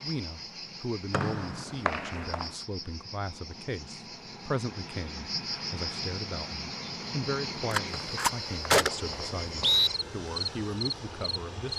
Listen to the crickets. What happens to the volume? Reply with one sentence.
The loudness of the crickets goes up.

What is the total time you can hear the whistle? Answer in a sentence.
The whistle can be heard for 3 seconds in total.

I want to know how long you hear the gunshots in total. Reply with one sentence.
You can hear the gunshots for 2 seconds altogether.